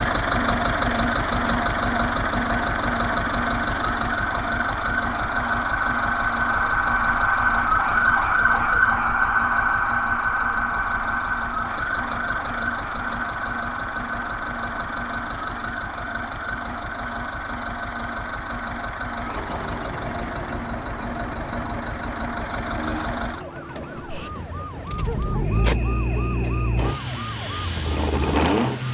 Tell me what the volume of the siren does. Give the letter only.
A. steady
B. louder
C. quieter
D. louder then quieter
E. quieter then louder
C.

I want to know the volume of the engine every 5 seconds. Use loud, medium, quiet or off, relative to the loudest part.
loud, medium, medium, medium, medium, loud.